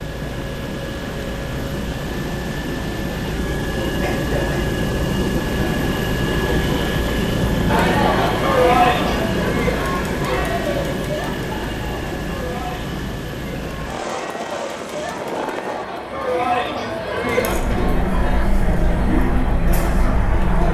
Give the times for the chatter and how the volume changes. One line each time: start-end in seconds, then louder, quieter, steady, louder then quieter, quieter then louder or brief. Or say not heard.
7.7-20.7 quieter then louder.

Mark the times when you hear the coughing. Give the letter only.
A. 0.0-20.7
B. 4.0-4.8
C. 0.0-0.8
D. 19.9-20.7
B.